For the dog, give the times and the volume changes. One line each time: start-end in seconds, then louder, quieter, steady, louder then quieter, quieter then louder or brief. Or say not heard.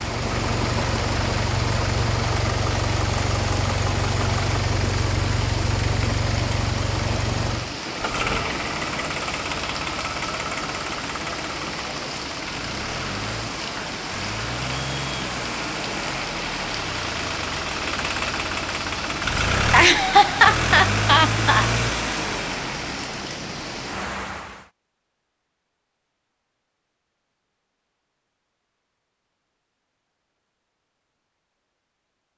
not heard.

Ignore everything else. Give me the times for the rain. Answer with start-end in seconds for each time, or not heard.
0.0-24.7.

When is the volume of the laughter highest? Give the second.
20 s.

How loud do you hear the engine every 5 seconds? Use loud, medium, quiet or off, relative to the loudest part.
loud, loud, medium, loud, loud, off, off.